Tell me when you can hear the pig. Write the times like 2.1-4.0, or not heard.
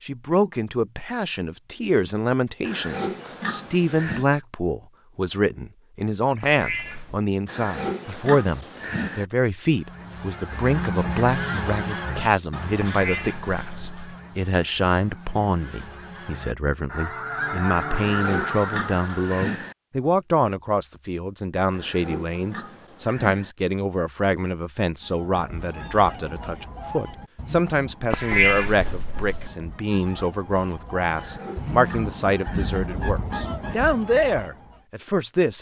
2.6-4.2, 7.5-9.2, 17.9-19.8, 21.7-23.6, 31.1-32.9.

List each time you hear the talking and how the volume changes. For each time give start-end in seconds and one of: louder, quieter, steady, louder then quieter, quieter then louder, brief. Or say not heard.
0.0-35.5 steady.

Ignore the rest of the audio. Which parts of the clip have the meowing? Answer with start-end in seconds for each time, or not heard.
6.4-7.2, 12.8-14.2, 28.1-29.5.